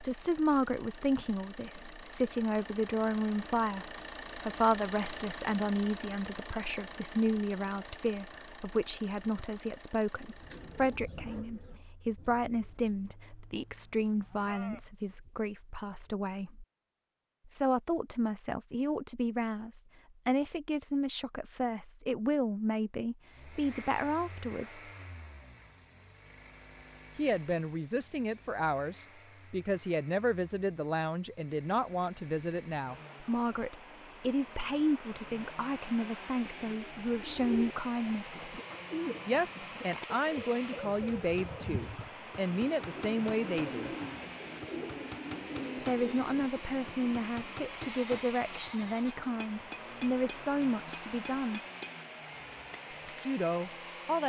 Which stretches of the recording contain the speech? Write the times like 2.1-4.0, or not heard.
0.0-16.6, 17.4-24.9, 27.1-38.5, 39.2-43.9, 45.9-51.6, 53.2-54.2.